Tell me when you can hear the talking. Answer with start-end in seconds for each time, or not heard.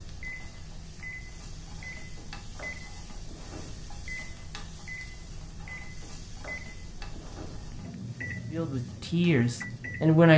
8.5-10.3.